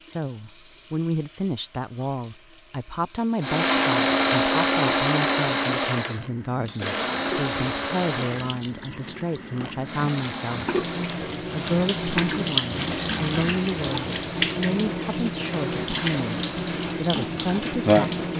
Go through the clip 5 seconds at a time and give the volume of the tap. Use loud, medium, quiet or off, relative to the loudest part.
quiet, quiet, loud, loud.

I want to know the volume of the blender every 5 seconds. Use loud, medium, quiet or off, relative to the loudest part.
loud, medium, quiet, quiet.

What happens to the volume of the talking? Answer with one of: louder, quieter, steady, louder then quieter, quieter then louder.
steady.